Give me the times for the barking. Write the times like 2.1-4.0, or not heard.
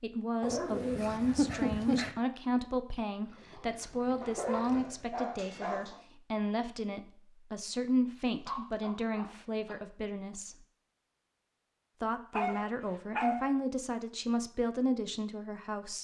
0.4-2.1, 4.2-6.0, 8.2-9.8, 12.3-13.5.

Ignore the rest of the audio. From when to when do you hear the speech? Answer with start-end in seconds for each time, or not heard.
0.0-10.6, 12.0-15.9.